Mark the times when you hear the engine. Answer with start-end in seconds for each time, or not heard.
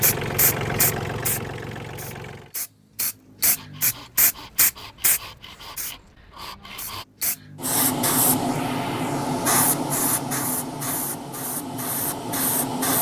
0.0-2.5.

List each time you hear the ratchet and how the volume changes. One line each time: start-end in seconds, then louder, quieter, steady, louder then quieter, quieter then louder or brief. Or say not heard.
not heard.